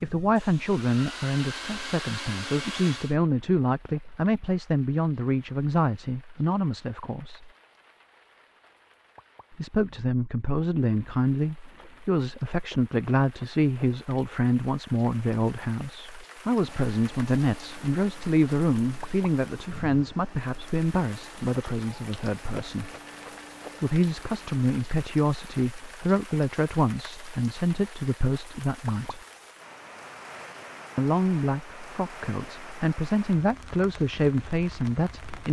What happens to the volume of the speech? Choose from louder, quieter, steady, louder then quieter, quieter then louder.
steady.